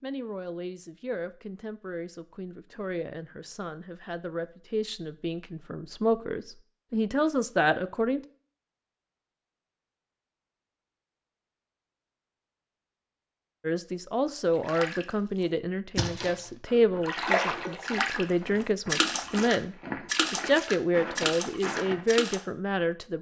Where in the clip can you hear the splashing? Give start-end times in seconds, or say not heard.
14.5-15.1, 15.9-16.4, 17.0-18.2, 18.9-22.4.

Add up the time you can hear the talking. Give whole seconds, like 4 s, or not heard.
18 s.